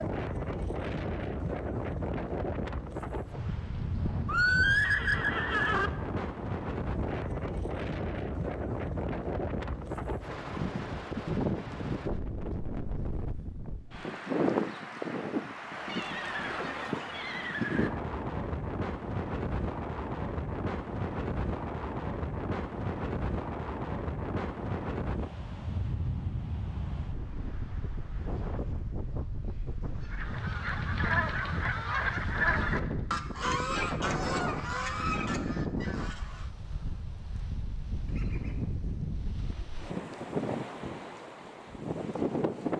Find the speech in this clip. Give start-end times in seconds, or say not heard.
not heard.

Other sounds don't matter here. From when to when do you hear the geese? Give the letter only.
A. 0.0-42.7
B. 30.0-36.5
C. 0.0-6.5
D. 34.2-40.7
B.